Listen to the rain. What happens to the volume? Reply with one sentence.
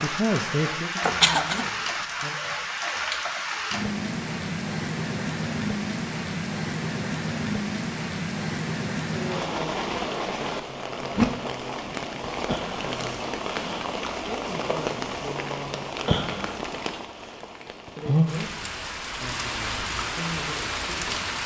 The volume of the rain stays about the same.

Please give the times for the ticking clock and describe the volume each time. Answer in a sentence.
You can't hear the ticking clock here.